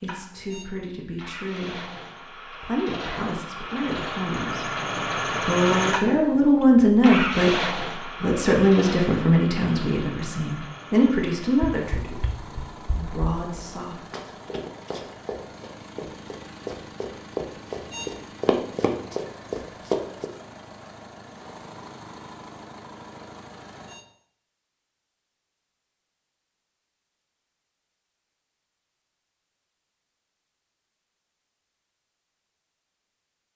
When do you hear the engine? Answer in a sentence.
The engine can be heard from 0.0 to 24.0 s.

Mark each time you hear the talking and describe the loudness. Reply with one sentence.
The talking can be heard briefly from 0.0 to 1.9 s; briefly from 2.6 to 4.7 s; and from 5.4 to 14.0 s, getting quieter.